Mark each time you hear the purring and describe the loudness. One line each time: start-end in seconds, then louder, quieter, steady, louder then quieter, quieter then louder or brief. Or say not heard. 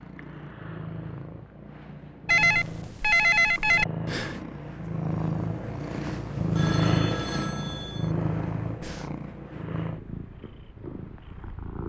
0.0-11.8 louder then quieter.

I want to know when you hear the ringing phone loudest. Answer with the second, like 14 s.
3 s.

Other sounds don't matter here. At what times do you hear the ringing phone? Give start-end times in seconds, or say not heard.
2.2-3.9, 6.5-8.2.